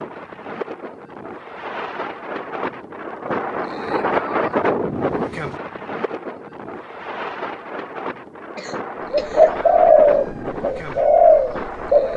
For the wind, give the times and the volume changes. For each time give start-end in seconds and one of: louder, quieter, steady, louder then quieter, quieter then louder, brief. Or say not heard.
0.0-12.1 louder then quieter.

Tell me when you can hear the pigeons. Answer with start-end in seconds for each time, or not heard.
9.1-12.1.